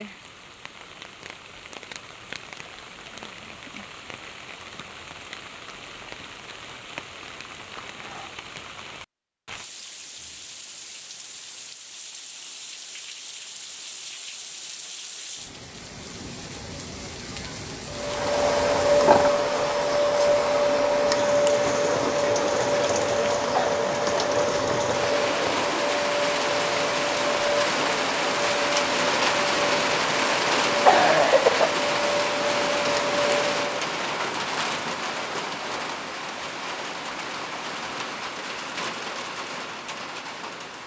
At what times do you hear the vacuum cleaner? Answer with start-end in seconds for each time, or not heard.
17.9-34.0.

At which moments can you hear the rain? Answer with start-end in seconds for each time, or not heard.
0.0-40.8.